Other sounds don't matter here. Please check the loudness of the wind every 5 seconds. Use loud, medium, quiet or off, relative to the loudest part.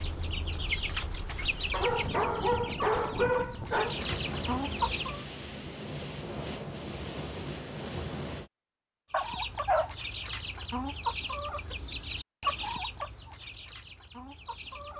loud, loud, off.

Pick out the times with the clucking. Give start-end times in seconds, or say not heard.
0.0-5.2, 9.1-14.9.